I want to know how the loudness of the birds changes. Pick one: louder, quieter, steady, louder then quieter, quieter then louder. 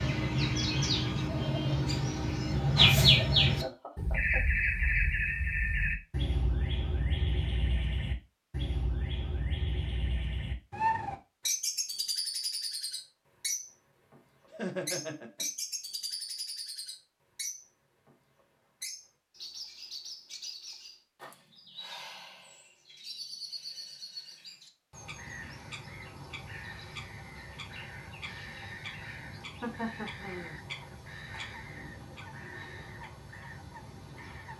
quieter.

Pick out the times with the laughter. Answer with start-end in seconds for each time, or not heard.
3.5-4.4, 14.5-15.4, 29.4-30.6.